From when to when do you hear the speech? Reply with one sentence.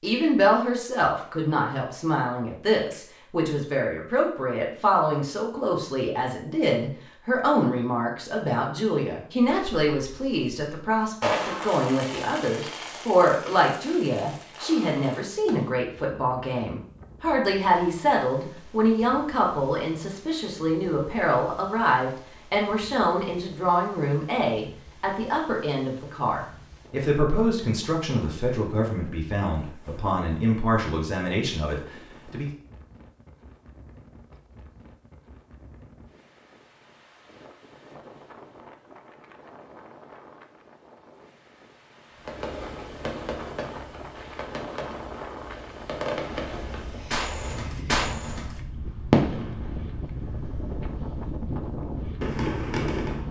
You can hear the speech from 0.0 to 32.5 s.